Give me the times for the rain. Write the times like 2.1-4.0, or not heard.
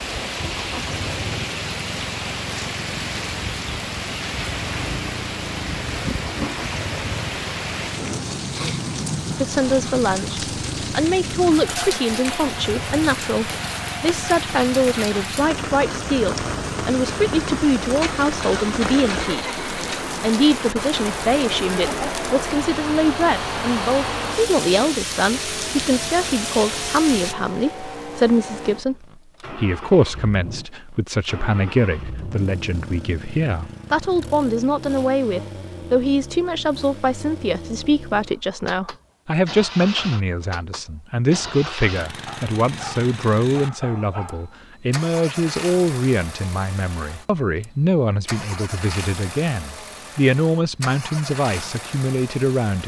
0.0-27.4.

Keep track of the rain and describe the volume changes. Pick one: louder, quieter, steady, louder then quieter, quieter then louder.
steady.